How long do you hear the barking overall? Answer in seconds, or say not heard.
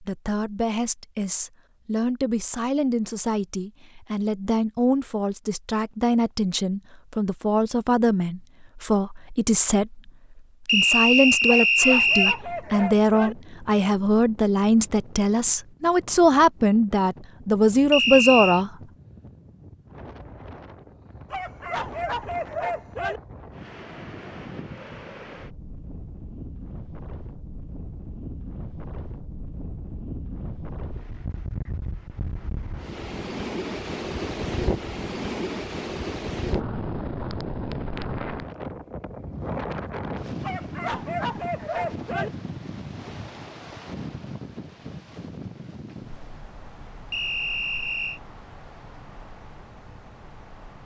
6 s.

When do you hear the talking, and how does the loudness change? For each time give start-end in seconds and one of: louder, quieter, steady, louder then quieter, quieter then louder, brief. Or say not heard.
0.0-18.7 louder.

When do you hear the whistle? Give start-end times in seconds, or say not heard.
10.7-12.4, 17.9-18.6, 47.1-48.2.